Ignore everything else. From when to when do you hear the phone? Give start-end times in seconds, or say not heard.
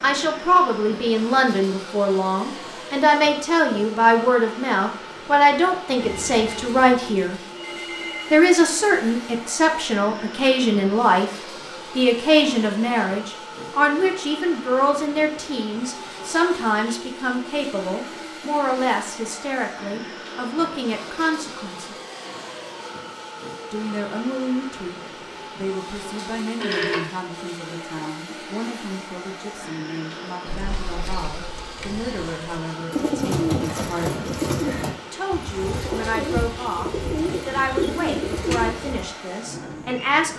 6.0-8.3, 26.6-27.1.